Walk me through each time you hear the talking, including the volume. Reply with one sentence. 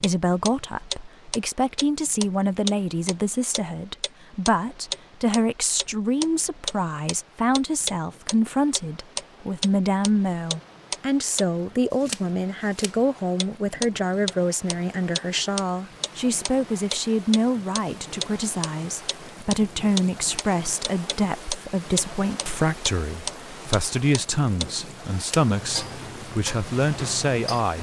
You can hear the talking from 0.0 to 27.7 s, at a steady volume.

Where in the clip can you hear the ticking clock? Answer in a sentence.
The ticking clock can be heard from 0.0 to 27.7 s.